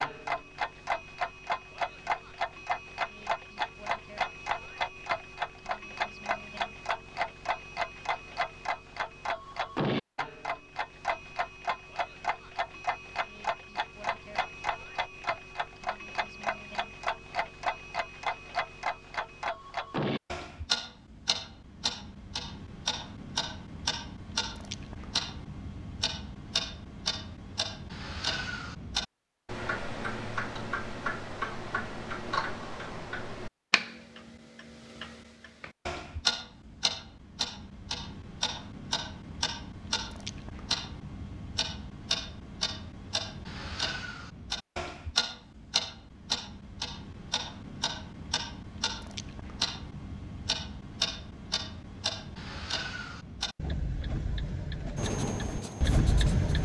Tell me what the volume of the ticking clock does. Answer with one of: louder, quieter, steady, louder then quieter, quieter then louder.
steady.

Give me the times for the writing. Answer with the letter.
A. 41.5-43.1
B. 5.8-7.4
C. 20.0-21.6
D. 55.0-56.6
D.